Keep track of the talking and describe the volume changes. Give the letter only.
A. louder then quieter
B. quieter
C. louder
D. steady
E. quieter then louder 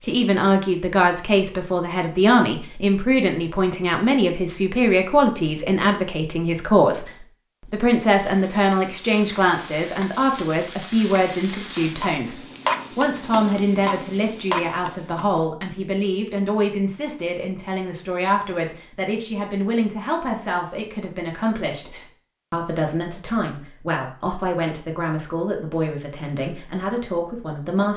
B.